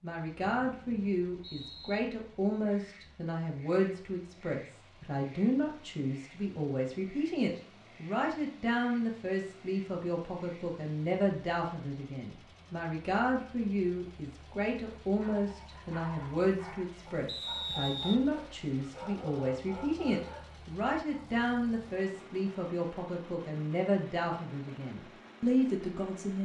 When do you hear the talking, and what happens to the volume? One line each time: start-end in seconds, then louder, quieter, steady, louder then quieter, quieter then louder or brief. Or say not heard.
0.0-26.4 steady.